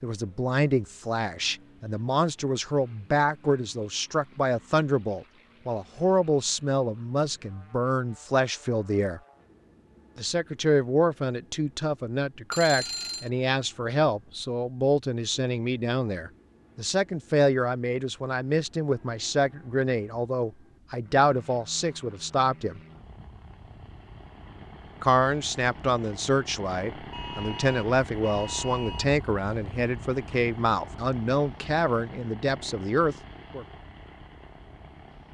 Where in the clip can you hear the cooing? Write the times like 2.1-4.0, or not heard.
not heard.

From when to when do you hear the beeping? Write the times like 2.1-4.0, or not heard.
12.5-13.3, 27.1-29.1.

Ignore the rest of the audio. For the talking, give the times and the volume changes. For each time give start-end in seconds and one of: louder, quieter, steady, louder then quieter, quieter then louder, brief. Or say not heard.
0.0-9.2 steady
10.2-22.8 steady
25.0-33.6 steady.